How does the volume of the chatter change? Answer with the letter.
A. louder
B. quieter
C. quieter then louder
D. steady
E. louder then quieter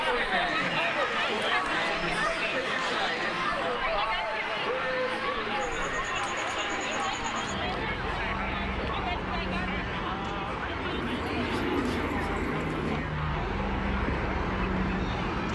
B.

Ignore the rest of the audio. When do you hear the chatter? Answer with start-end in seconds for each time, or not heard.
0.0-15.5.